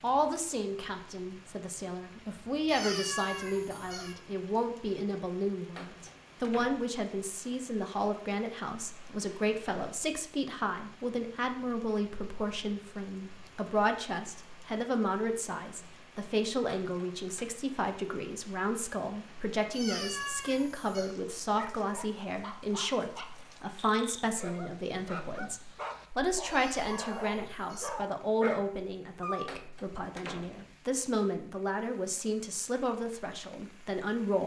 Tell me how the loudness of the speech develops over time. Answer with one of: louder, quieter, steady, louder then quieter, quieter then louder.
steady.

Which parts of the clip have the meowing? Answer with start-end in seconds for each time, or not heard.
2.6-4.2, 19.7-21.1, 26.4-27.9.